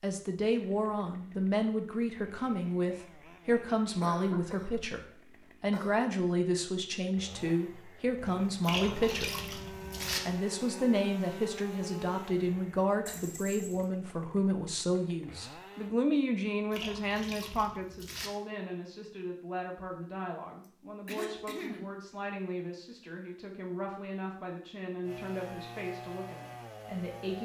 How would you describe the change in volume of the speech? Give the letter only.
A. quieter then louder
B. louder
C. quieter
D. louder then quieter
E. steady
C.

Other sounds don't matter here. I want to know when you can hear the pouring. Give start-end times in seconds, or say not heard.
8.6-10.2, 16.7-18.3.